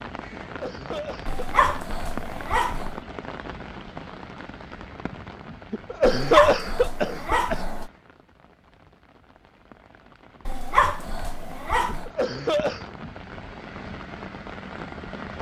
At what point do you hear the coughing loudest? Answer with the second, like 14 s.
6 s.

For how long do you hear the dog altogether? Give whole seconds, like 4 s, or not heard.
5 s.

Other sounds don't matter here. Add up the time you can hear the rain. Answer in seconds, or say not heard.
15 s.